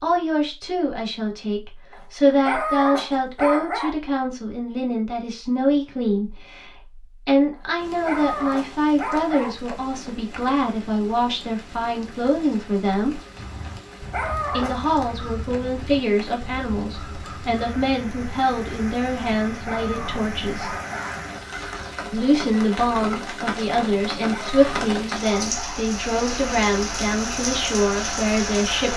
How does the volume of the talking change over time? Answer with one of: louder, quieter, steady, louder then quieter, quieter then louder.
steady.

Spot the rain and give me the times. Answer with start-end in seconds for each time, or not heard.
7.8-28.9.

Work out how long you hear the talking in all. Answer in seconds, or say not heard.
26 s.